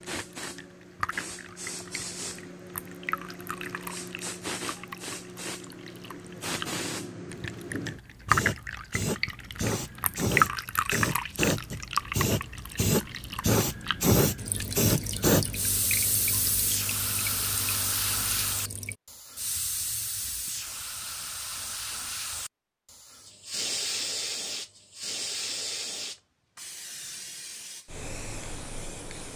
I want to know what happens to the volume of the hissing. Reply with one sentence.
The loudness of the hissing goes up, then down.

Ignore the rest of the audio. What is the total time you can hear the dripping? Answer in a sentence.
The dripping can be heard for 19 seconds in total.